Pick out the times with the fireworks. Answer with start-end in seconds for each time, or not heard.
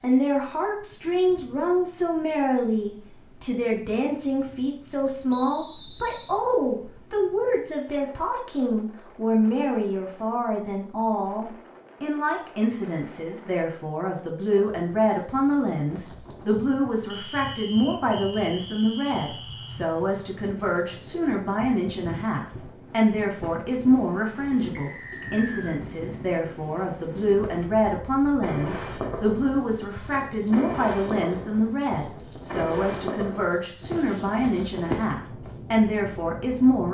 27.4-35.5.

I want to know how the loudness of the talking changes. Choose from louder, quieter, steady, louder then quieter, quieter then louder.
steady.